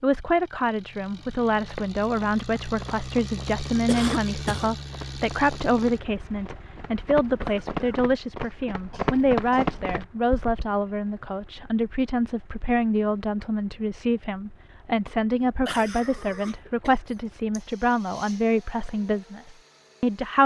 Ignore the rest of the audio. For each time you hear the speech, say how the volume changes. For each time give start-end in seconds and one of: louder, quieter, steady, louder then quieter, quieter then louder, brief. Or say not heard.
0.0-20.4 steady.